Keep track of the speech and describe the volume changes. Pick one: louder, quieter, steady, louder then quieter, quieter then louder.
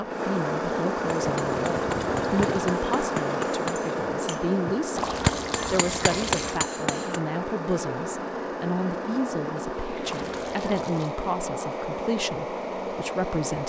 steady.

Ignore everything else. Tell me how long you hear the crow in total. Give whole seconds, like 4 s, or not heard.
not heard.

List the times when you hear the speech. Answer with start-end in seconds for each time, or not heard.
0.0-5.0, 5.7-13.6.